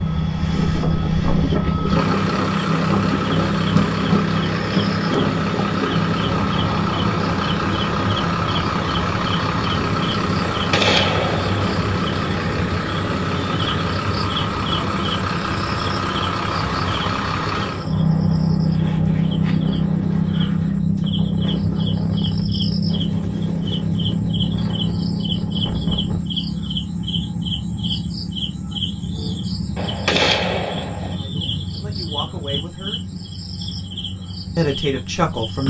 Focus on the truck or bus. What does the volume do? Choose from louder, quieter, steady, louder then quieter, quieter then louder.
steady.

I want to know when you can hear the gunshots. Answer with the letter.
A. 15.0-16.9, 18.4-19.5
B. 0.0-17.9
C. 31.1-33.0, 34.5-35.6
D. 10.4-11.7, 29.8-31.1
D.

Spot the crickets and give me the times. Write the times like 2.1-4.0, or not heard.
0.0-35.6.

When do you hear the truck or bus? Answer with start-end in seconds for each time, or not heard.
0.0-17.9.